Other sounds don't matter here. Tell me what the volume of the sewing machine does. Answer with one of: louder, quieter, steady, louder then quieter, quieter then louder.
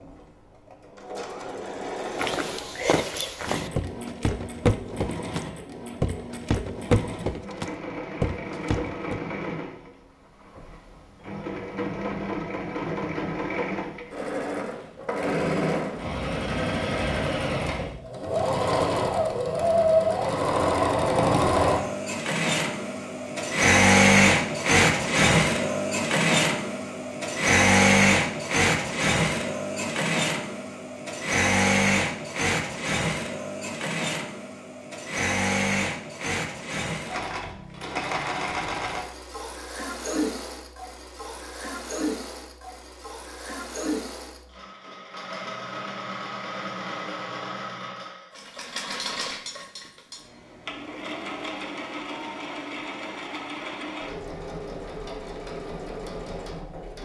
louder then quieter.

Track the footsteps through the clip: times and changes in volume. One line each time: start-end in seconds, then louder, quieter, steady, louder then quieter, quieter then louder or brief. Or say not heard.
2.1-9.2 steady.